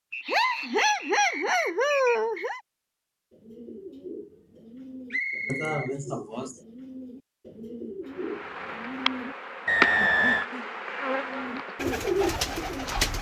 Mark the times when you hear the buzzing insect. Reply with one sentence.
You can hear the buzzing insect from 8.1 to 13.1 s.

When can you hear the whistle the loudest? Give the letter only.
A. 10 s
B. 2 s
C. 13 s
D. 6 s
A.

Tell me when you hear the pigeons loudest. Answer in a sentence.
The volume of the pigeons peaks at 12 seconds.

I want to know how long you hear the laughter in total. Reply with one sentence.
The laughter can be heard for 4 seconds in total.